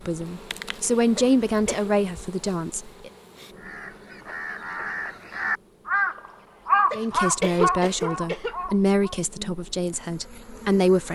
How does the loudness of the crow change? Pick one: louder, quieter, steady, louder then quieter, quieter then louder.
louder then quieter.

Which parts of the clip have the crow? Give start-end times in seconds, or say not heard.
3.5-9.2.